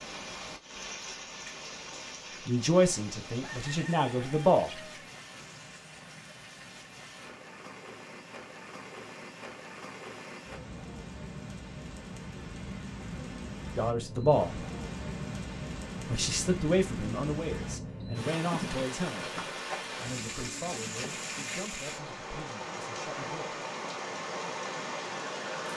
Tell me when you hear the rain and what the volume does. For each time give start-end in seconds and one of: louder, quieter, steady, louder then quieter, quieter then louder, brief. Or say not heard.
0.0-25.7 louder.